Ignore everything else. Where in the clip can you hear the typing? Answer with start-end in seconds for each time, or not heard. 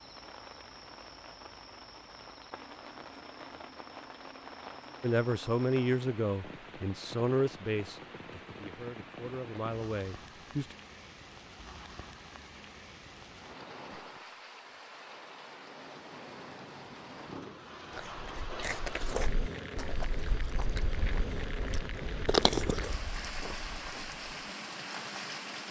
not heard.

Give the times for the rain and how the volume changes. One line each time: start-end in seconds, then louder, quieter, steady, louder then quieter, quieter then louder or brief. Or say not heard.
0.0-25.6 louder.